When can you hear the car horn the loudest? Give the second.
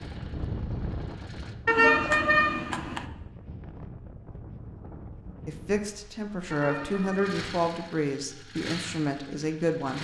2 s.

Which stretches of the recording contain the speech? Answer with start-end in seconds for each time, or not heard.
5.5-9.9.